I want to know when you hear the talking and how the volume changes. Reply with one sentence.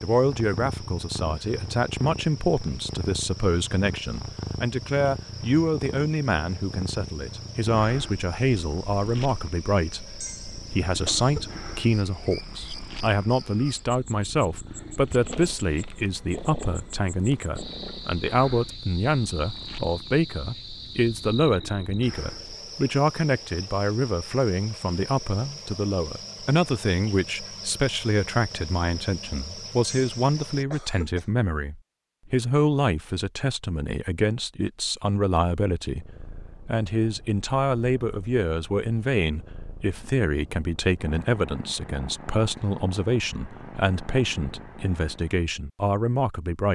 The talking can be heard from 0.0 to 46.7 s, at a steady volume.